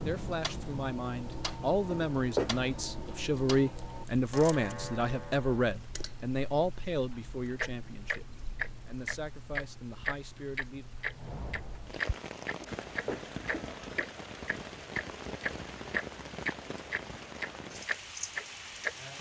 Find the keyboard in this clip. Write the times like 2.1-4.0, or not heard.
not heard.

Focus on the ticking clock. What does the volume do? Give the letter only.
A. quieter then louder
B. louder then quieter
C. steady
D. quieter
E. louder
E.